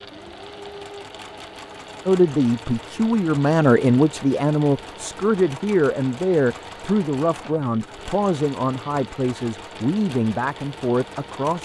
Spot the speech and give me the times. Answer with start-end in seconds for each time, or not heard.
2.0-11.6.